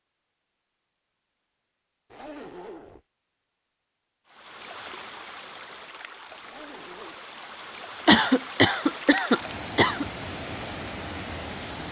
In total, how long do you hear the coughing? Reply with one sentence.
The coughing can be heard for 2 seconds in total.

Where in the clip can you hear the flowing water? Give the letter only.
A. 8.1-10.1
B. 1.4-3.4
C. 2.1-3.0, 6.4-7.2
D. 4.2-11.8
D.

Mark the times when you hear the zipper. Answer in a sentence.
The zipper can be heard from 2.1 to 3.0 s and from 6.4 to 7.2 s.